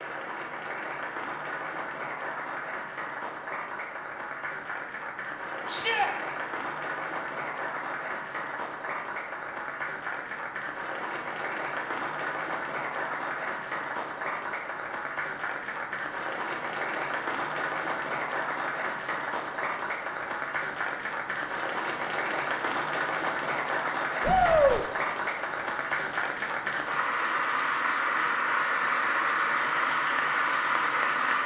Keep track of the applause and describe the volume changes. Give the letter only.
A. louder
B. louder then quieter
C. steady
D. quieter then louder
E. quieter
A.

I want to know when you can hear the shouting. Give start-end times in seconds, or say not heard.
5.7-6.1, 24.2-24.8.